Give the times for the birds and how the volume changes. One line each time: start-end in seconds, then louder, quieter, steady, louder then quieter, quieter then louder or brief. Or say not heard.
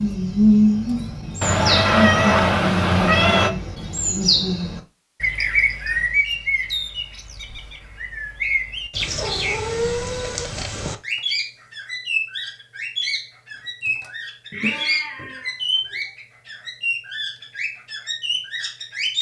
0.0-19.1 quieter.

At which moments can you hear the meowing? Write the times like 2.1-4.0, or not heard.
1.4-3.5, 9.0-10.9, 14.5-15.9.